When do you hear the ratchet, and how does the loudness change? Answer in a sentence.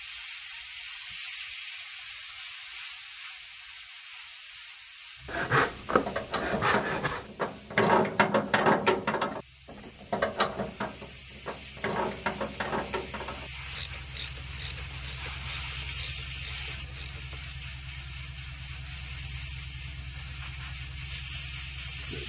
The ratchet can be heard from 6.0 to 17.6 s, getting quieter.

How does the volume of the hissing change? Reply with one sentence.
The volume of the hissing goes down, then up.